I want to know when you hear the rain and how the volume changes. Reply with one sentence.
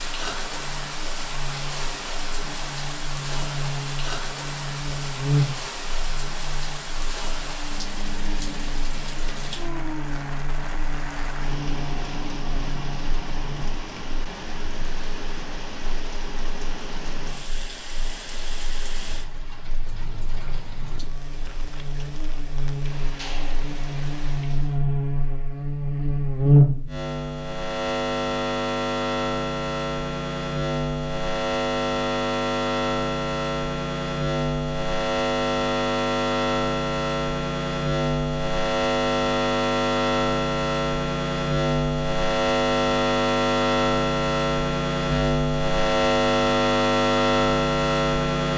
The rain can be heard from 0.0 to 24.9 s, getting quieter.